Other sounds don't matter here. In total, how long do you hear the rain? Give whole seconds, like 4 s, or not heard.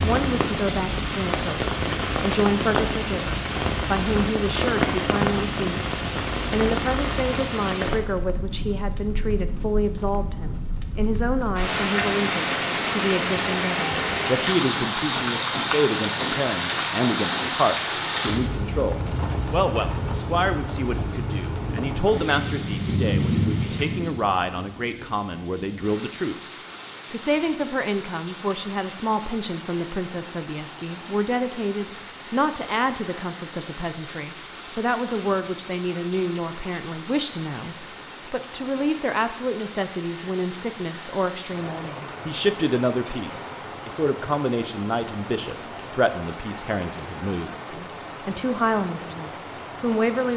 50 s.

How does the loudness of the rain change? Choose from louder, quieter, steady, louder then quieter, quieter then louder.
quieter.